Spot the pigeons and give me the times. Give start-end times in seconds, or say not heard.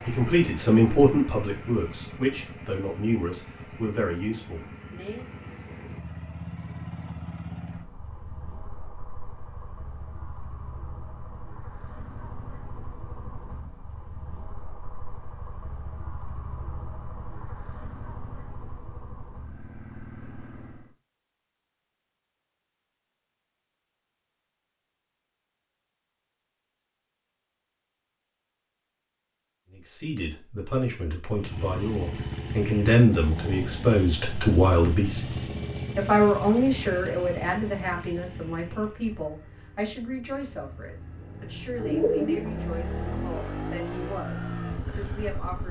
41.8-42.5.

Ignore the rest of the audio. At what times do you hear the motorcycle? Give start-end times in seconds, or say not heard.
0.0-20.9, 31.3-45.6.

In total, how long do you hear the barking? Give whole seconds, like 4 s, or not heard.
not heard.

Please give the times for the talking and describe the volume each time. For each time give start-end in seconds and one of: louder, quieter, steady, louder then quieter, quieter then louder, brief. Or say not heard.
0.1-5.2 quieter
29.7-45.6 quieter.